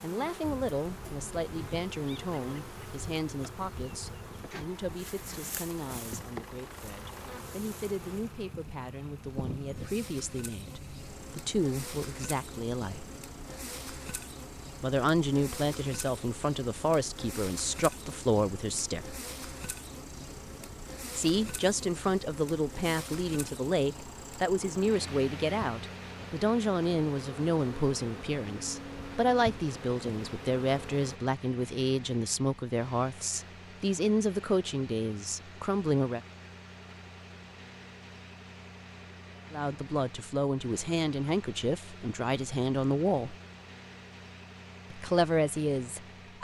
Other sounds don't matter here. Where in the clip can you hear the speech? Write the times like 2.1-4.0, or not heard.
0.0-13.1, 14.8-19.2, 21.1-36.2, 39.5-43.4, 44.9-46.3.